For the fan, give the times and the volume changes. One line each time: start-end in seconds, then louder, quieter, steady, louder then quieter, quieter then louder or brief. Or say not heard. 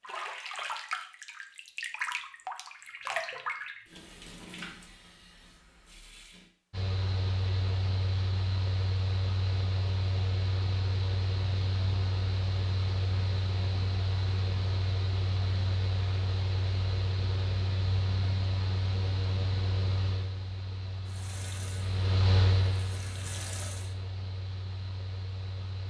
6.7-25.8 steady.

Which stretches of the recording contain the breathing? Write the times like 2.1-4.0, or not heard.
not heard.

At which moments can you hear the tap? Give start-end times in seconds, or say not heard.
0.0-6.5, 21.1-23.9.